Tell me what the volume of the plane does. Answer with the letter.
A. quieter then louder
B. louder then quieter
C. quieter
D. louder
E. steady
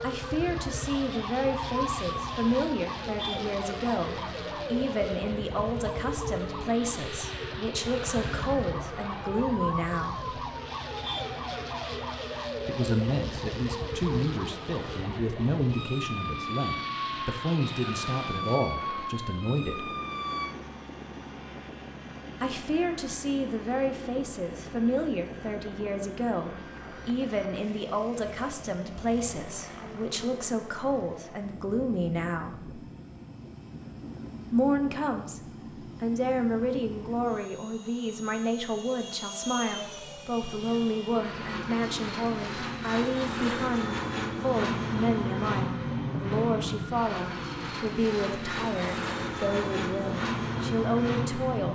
D.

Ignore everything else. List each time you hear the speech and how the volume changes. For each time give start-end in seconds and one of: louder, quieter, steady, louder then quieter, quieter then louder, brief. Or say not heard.
0.0-10.3 steady
12.7-19.9 steady
22.4-32.8 steady
34.5-35.4 brief
36.0-51.6 steady.